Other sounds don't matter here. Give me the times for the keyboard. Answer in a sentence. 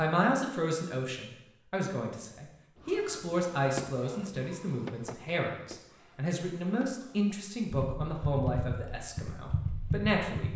The keyboard can be heard from 7.7 to 10.5 s.